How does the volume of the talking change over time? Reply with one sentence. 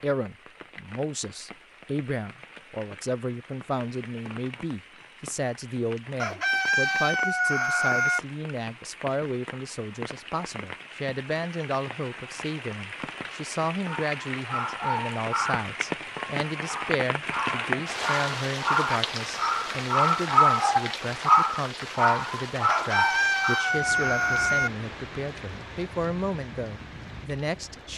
The loudness of the talking stays about the same.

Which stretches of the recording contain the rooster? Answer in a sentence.
The rooster can be heard from 6.2 to 8.2 s and from 22.6 to 24.7 s.